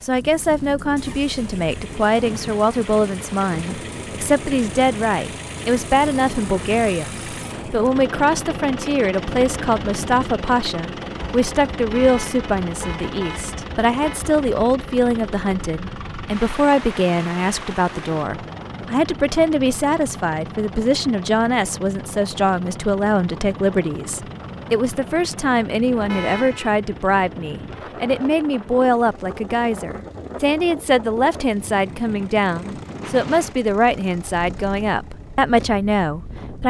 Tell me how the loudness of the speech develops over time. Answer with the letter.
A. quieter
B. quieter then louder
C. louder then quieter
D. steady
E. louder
D.